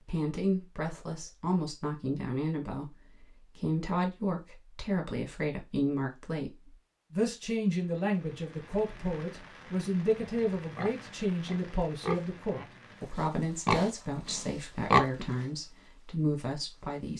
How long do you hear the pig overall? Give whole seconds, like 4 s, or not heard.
5 s.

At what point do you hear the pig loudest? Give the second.
15 s.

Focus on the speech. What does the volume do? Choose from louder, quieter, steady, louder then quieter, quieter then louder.
steady.